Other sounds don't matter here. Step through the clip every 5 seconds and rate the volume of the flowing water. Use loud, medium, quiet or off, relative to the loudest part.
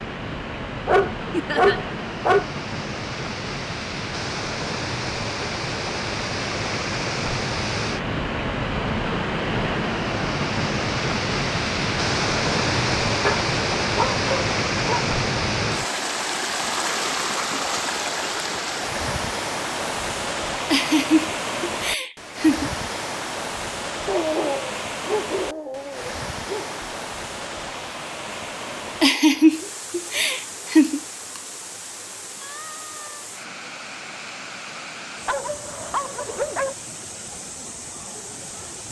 medium, loud, loud, loud, medium, medium, quiet, quiet.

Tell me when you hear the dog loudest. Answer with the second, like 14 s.
2 s.